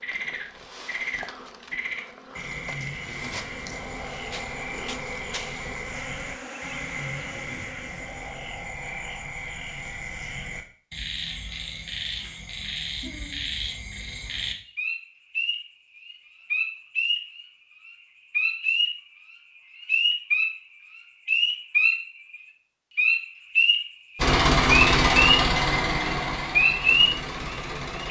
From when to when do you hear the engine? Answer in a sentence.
The engine can be heard from 24.1 to 28.0 s.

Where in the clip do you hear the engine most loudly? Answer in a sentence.
The loudest moment of the engine is at 25 seconds.